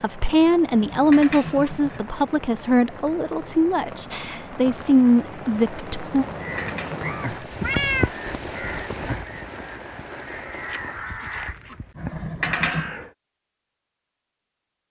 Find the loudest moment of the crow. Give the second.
8 s.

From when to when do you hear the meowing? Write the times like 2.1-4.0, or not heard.
7.4-9.2.